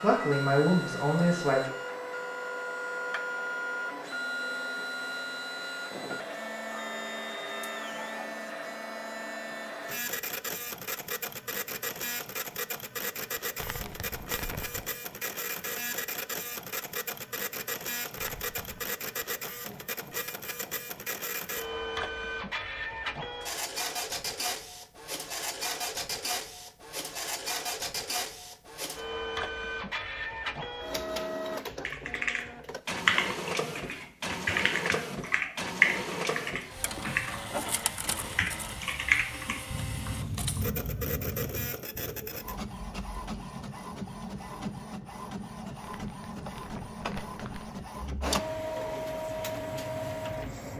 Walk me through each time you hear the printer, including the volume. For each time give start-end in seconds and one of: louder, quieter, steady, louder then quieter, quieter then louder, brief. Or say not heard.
0.0-50.7 steady.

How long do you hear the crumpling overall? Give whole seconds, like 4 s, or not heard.
4 s.